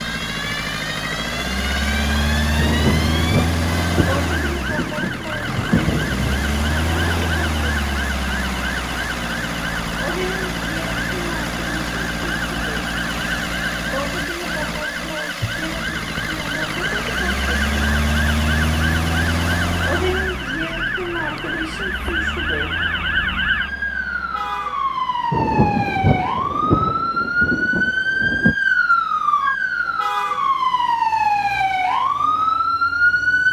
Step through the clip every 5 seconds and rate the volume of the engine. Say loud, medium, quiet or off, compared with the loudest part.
loud, loud, loud, loud, medium, quiet, quiet.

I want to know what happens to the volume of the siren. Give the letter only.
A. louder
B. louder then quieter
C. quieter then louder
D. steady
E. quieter
A.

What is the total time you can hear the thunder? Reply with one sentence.
You can hear the thunder for 8 seconds altogether.